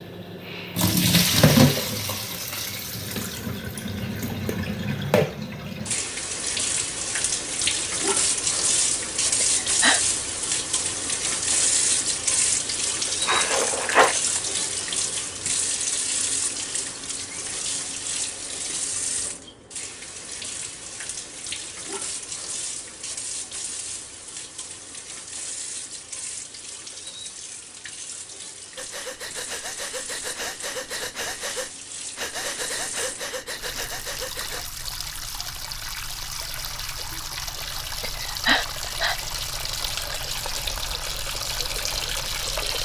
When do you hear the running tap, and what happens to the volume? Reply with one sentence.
The running tap can be heard from 0.0 to 42.7 s, getting quieter then louder.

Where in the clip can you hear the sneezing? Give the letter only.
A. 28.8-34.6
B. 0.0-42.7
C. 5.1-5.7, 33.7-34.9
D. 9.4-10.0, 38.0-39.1
D.